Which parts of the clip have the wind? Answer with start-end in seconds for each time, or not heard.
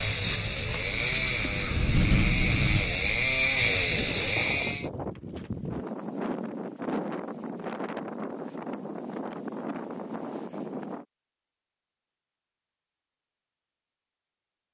0.0-11.1.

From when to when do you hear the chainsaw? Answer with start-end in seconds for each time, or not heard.
0.0-4.9.